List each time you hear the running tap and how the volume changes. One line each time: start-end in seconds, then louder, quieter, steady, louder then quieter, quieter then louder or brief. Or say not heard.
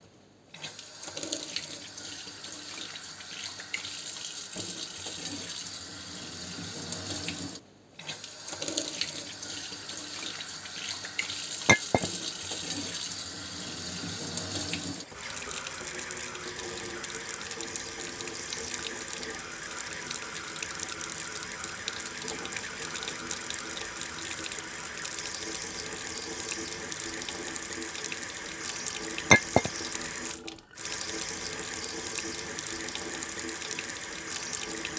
0.0-34.9 steady.